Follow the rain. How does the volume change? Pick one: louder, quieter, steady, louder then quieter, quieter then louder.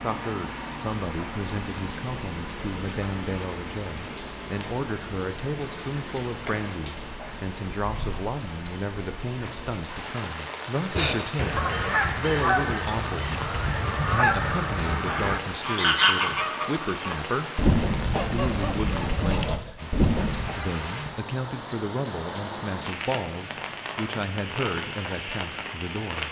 steady.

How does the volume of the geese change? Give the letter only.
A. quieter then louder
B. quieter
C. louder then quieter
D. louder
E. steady
E.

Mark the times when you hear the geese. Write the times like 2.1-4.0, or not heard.
10.9-20.6.